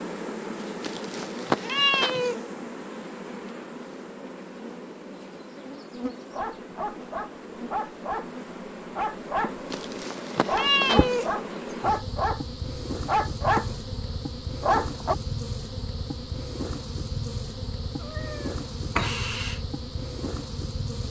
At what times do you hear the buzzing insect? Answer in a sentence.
The buzzing insect can be heard from 0.0 to 21.0 s.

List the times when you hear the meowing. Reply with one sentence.
The meowing can be heard from 0.8 to 2.4 s, from 9.7 to 11.3 s and from 18.0 to 19.6 s.